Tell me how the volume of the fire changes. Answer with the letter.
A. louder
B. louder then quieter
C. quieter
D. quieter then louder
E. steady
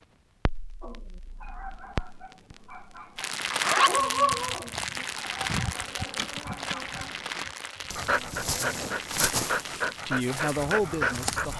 B.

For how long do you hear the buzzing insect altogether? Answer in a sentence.
The buzzing insect can be heard for 5 seconds in total.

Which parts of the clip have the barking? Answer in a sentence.
The barking can be heard from 0.8 to 11.5 s.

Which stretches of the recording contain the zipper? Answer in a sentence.
The zipper can be heard from 3.5 to 4.5 s.